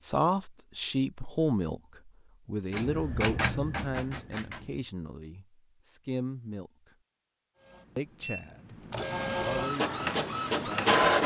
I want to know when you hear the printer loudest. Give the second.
11 s.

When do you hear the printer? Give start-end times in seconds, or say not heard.
2.7-4.8, 7.6-11.2.